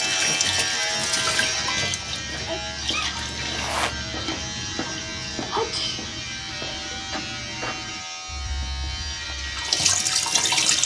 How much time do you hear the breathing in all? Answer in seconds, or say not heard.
not heard.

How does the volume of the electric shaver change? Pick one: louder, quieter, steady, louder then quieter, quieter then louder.
quieter.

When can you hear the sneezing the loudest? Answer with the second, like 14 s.
6 s.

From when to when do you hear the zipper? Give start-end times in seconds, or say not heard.
3.1-4.0.